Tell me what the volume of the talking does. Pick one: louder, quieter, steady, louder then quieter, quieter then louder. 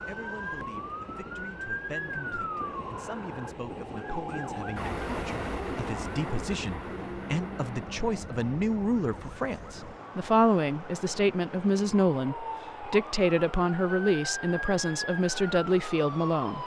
louder.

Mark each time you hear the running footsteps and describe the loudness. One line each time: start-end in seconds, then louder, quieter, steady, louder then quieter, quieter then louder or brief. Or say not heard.
not heard.